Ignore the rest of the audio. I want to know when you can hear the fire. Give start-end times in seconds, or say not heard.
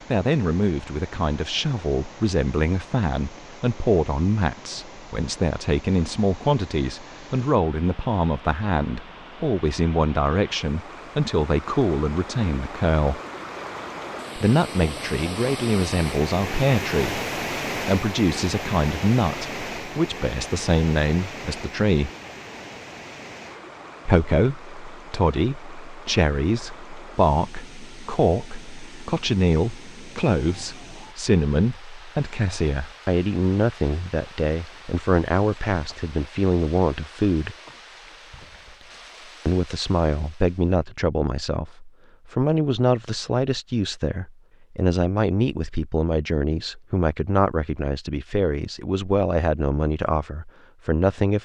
not heard.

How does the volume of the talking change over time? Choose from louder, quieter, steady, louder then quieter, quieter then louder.
steady.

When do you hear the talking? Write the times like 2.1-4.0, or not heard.
0.1-13.2, 14.3-22.1, 24.1-37.5, 39.5-51.4.